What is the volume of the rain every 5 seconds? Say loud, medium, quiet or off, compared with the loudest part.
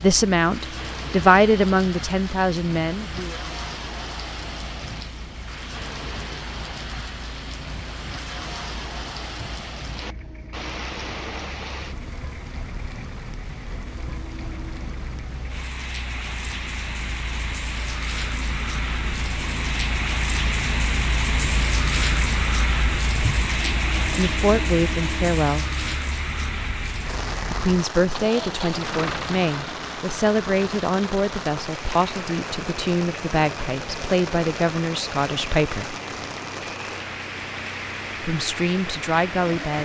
medium, medium, medium, medium, loud, medium, medium, medium.